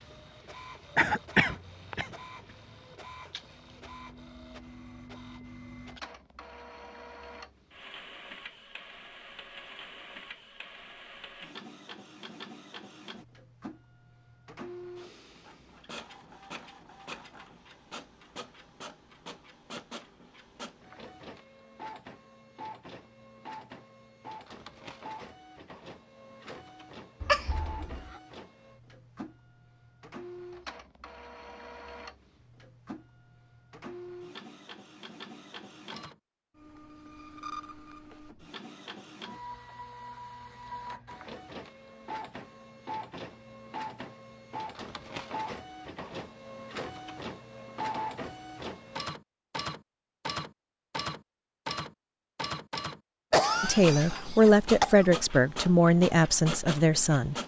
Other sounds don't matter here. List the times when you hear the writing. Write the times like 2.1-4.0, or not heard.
not heard.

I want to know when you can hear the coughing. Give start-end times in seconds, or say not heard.
0.9-2.1, 27.2-28.1, 53.3-55.0.